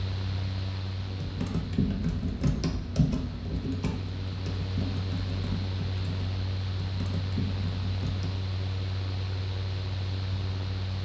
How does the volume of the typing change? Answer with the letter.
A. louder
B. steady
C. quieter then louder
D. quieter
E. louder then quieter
D.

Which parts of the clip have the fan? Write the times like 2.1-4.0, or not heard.
0.0-11.0.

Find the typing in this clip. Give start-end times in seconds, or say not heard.
0.9-8.4.